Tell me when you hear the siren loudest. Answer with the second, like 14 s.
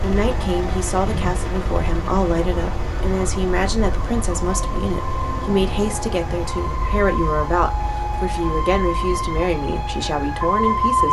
11 s.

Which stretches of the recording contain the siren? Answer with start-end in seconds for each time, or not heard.
0.0-11.0.